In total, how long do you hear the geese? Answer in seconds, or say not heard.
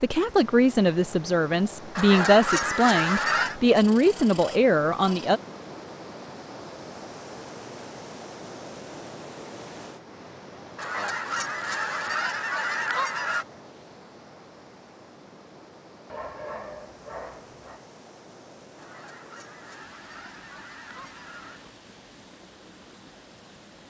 7 s.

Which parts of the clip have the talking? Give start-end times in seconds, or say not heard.
0.0-5.4.